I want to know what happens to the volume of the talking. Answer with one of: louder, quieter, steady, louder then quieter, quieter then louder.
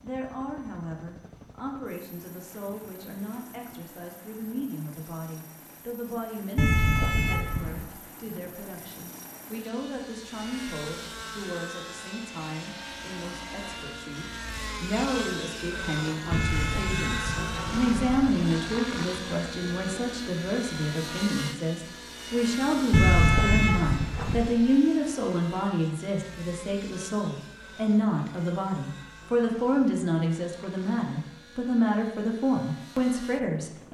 louder.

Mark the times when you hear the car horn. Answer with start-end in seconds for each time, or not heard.
6.5-7.8, 16.3-18.3, 22.9-24.5.